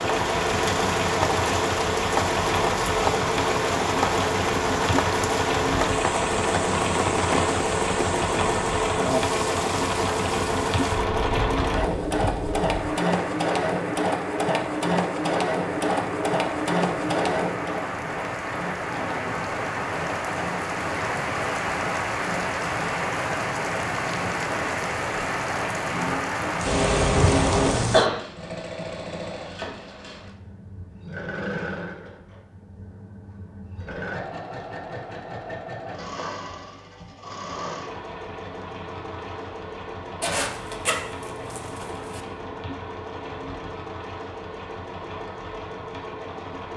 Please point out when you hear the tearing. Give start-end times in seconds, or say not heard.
not heard.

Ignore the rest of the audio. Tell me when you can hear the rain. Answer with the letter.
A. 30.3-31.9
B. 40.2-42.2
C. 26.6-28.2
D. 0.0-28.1
D.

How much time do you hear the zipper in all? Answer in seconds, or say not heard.
2 s.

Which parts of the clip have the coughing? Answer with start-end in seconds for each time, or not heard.
26.6-28.2.